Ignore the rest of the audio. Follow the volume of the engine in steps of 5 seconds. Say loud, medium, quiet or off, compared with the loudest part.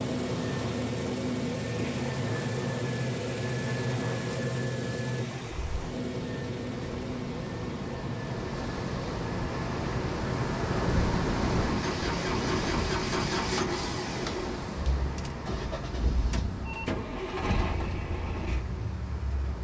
loud, medium, loud, medium.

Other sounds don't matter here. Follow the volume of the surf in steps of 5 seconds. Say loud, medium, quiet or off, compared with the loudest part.
medium, medium, loud, medium.